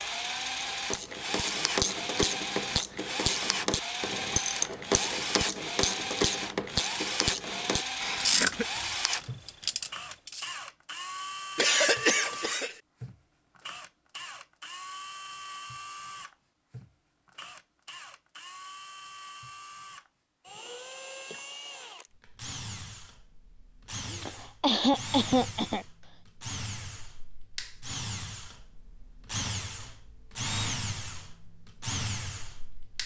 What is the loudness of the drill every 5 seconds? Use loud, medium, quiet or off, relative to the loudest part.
loud, loud, medium, medium, medium, medium, loud.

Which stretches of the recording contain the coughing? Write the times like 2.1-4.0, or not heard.
8.0-8.7, 11.6-12.8, 24.1-25.9.